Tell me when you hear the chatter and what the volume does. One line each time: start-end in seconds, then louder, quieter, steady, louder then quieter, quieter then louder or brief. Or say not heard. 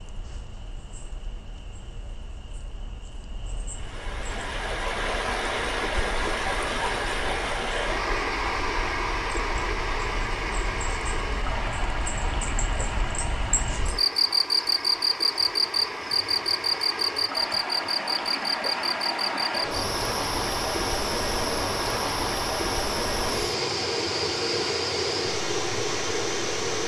not heard.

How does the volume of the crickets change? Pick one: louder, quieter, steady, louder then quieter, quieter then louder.
louder then quieter.